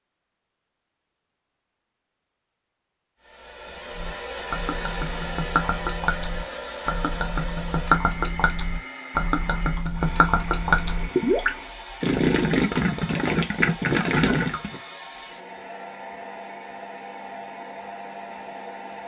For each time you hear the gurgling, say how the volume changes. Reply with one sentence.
The gurgling can be heard from 3.9 to 14.8 s, getting louder.